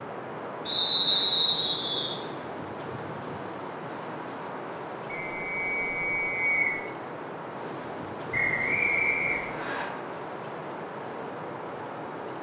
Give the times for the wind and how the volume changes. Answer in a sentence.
The wind can be heard from 0.0 to 12.3 s, at a steady volume.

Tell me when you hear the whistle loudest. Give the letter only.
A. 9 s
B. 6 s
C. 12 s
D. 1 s
D.